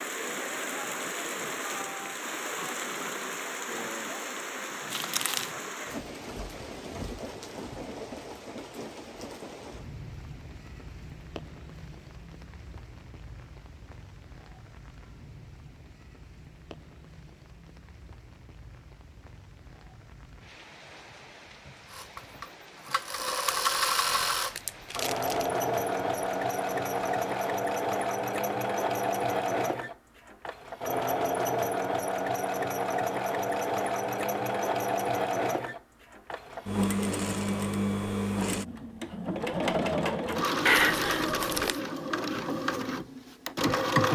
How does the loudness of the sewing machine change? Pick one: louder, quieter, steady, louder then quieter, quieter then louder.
steady.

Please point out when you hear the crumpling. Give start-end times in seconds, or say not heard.
4.9-5.5, 23.4-25.5, 40.6-41.8.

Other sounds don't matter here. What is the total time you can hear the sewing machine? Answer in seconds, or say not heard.
22 s.